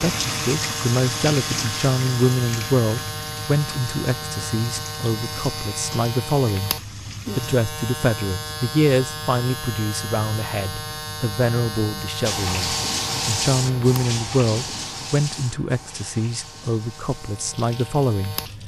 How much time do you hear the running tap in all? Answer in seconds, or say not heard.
14 s.